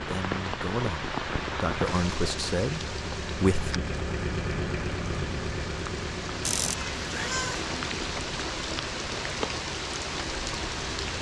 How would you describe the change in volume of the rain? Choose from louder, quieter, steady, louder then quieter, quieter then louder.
quieter then louder.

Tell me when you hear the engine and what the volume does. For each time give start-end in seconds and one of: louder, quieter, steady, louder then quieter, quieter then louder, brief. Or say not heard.
0.0-11.1 louder then quieter.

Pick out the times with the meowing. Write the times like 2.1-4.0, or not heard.
6.4-7.7.